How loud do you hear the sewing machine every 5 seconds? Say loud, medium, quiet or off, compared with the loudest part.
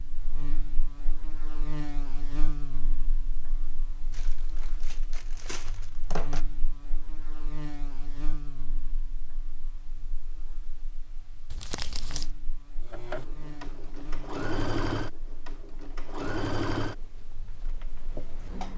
off, off, loud, loud.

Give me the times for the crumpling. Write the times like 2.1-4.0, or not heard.
4.1-6.5, 11.5-12.3.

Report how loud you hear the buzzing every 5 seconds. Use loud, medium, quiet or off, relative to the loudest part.
loud, loud, medium, quiet.